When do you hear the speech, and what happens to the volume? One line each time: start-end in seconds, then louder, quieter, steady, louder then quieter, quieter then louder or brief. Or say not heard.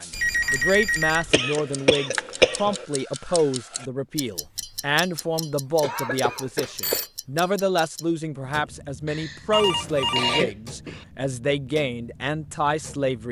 0.0-13.2 steady.